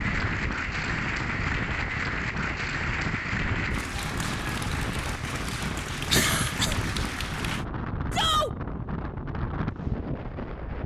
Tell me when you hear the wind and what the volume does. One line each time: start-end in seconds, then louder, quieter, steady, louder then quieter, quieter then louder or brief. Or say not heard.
0.0-10.8 steady.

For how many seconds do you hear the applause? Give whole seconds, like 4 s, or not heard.
8 s.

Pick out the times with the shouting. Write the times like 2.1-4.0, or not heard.
8.1-8.5.